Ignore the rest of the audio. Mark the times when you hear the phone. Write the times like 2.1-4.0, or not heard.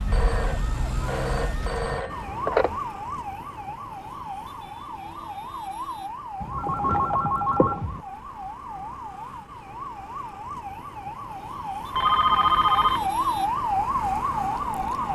0.1-2.8, 6.4-8.0, 11.9-13.1.